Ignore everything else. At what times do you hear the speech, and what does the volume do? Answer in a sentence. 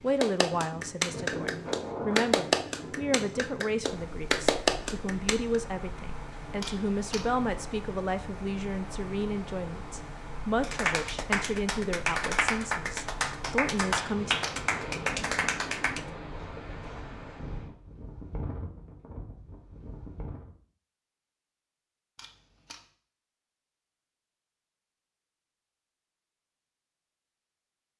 You can hear the speech from 0.0 to 14.3 s, at a steady volume.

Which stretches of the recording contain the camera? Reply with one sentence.
You can hear the camera from 6.6 to 7.3 s, from 13.9 to 14.6 s and from 22.1 to 22.9 s.